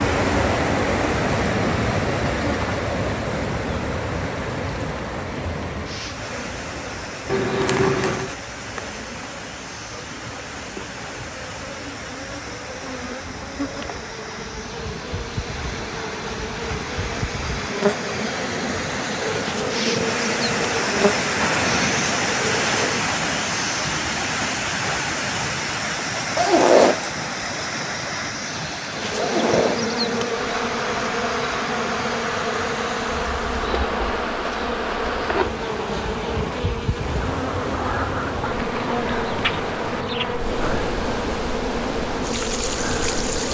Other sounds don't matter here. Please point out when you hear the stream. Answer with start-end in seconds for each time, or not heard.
0.0-43.5.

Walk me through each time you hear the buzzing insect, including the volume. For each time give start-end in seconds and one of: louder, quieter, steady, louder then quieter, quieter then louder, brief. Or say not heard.
0.0-23.1 quieter then louder
28.9-43.5 steady.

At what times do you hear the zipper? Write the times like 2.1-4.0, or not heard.
7.2-8.3, 26.4-27.1, 29.1-29.9.